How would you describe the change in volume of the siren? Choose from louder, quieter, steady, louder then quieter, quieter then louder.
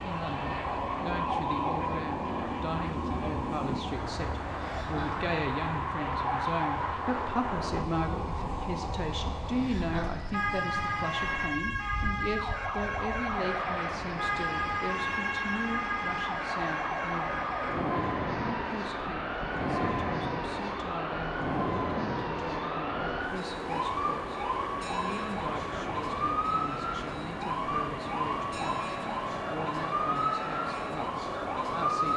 steady.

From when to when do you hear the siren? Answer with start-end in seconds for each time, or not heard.
0.0-32.1.